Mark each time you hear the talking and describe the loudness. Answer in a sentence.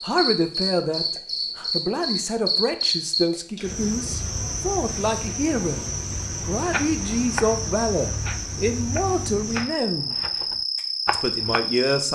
The talking can be heard from 0.0 to 10.2 s, at a steady volume; and briefly from 11.1 to 12.1 s.